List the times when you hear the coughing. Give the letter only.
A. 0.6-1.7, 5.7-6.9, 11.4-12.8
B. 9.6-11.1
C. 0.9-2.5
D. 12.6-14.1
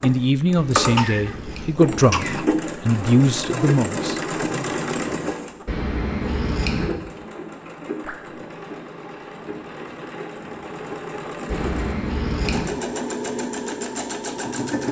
C.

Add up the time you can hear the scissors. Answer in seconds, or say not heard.
4 s.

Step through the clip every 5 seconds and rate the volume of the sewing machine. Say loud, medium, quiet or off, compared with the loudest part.
loud, medium, loud.